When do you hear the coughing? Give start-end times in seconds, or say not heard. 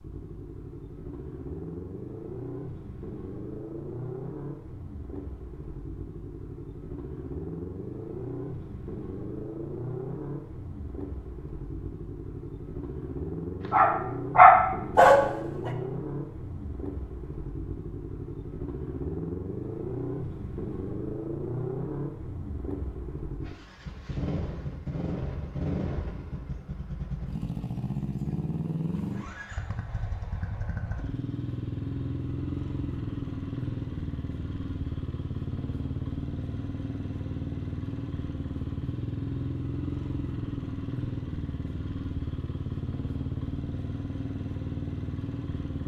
not heard.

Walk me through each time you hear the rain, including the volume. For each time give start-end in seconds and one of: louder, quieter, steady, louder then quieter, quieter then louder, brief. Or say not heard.
not heard.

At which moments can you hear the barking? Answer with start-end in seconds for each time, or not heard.
13.7-15.7.